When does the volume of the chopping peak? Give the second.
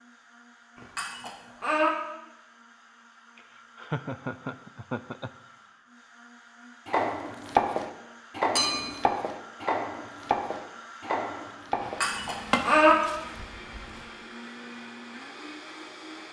8 s.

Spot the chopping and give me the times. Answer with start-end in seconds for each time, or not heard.
6.8-14.1.